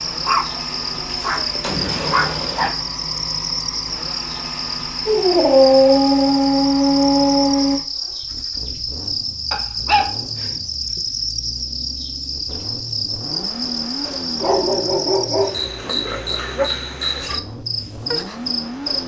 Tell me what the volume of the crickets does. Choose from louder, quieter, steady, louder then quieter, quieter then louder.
steady.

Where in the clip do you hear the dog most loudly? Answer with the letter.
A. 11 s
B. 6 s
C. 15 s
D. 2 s
B.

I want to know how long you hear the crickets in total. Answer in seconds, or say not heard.
19 s.